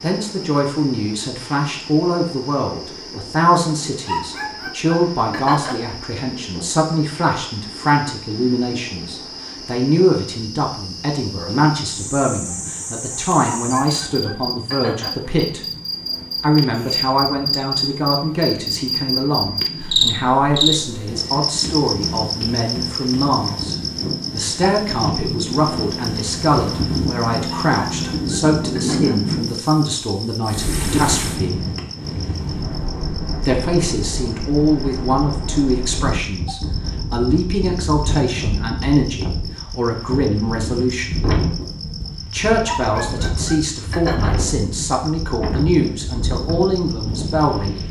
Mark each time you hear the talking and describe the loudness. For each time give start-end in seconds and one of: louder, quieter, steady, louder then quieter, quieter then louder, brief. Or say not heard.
0.0-15.6 steady
16.4-31.6 steady
33.5-41.2 steady
42.2-47.8 steady.